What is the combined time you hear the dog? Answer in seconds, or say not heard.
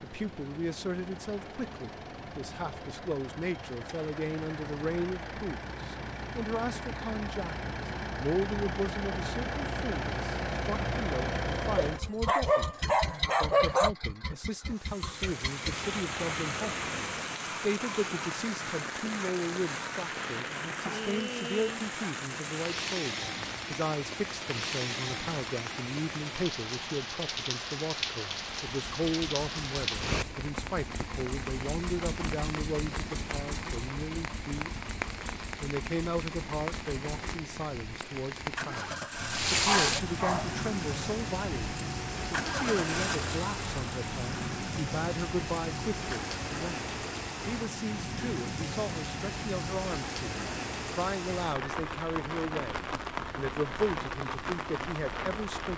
4 s.